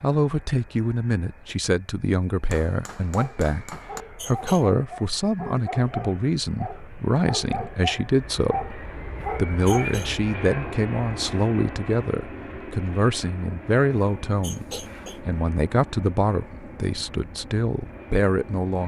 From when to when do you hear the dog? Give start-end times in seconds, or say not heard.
3.1-9.8.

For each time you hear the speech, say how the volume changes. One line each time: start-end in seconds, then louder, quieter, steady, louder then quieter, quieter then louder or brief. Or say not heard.
0.0-18.8 steady.